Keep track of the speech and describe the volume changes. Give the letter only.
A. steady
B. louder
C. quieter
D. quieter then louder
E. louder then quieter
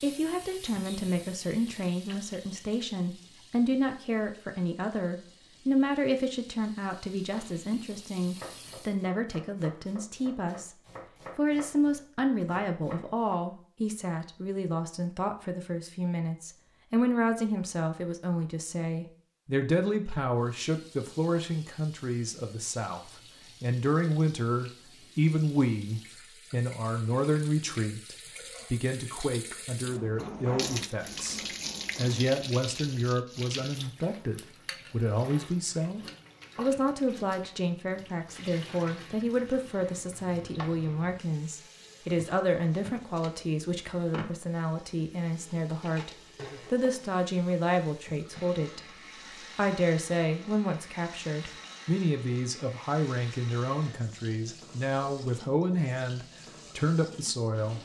A.